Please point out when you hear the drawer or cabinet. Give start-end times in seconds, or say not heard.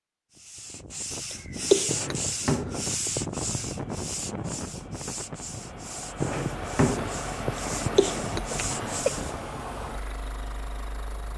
1.9-3.4, 6.2-8.0.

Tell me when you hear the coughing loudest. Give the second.
2 s.